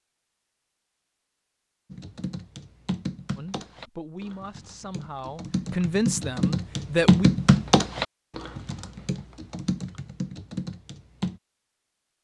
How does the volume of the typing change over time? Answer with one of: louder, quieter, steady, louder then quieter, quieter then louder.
louder then quieter.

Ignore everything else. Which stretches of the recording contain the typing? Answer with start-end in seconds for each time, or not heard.
1.9-11.4.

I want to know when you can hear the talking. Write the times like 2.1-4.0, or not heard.
3.4-7.3.